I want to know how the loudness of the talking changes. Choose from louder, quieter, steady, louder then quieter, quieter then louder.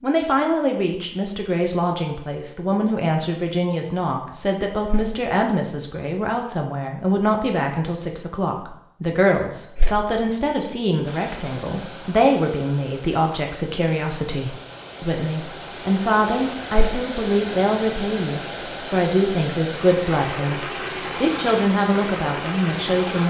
steady.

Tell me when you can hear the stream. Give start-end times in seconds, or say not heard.
11.1-23.2.